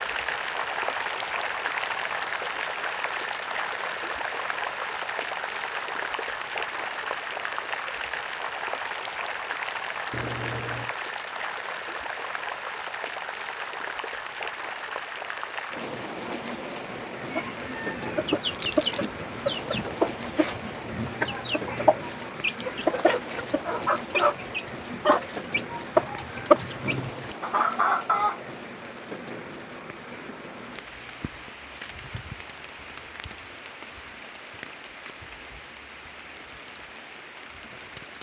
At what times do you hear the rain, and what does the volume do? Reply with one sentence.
You can hear the rain from 0.0 to 38.1 s, getting quieter.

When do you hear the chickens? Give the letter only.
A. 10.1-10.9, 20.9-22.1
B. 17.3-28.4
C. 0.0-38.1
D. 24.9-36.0
B.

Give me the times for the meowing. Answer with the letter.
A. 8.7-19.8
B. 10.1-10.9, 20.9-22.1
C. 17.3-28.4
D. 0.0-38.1
B.